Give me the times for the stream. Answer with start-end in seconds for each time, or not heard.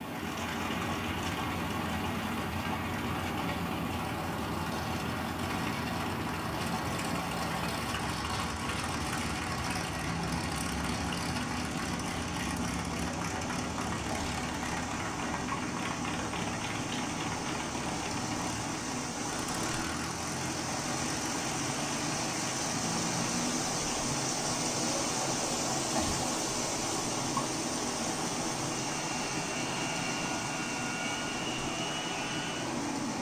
0.0-33.1.